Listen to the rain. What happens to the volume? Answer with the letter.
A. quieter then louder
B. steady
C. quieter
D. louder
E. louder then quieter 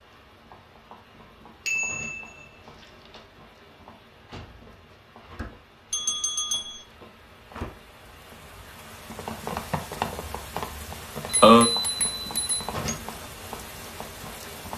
D.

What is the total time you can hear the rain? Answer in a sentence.
You can hear the rain for 15 seconds altogether.